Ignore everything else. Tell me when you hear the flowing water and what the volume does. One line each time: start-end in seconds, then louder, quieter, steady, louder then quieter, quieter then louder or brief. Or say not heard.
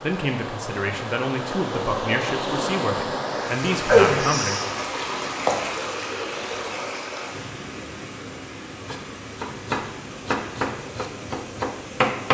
0.0-12.2 louder then quieter.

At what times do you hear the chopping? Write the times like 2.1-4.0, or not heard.
8.8-12.2.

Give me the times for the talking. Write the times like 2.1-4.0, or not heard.
0.0-4.5.